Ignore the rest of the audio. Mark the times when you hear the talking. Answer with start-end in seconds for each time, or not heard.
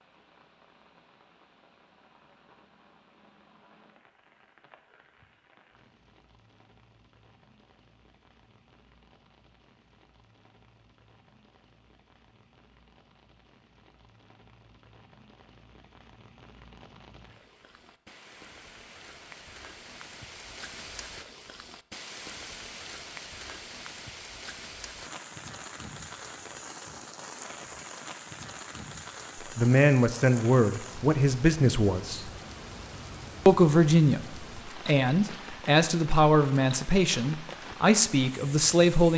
29.6-32.3, 33.5-39.1.